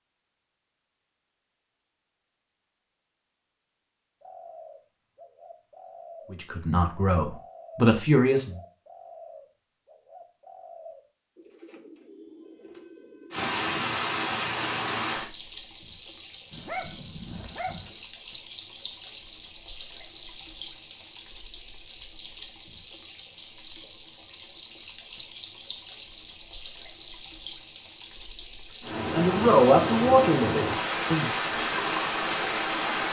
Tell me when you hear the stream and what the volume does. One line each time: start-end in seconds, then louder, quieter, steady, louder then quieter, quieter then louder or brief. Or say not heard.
13.3-33.0 quieter then louder.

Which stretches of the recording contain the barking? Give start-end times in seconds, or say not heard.
16.5-17.9.